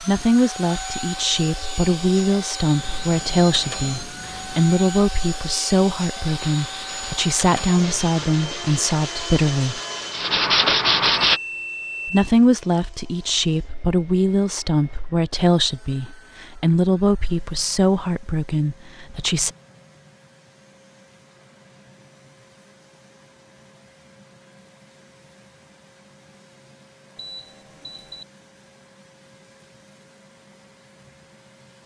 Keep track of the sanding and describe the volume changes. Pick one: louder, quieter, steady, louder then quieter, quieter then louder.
louder.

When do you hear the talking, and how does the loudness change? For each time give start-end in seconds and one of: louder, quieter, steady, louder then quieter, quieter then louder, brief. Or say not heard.
0.0-9.8 steady
12.1-19.5 steady.